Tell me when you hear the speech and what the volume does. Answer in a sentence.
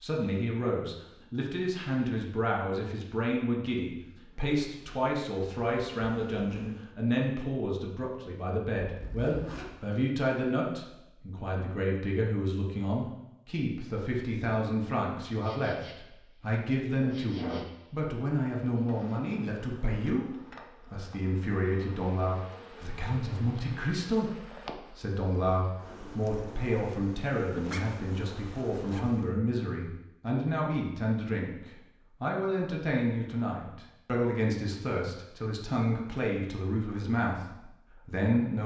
The speech can be heard from 0.0 to 38.6 s, at a steady volume.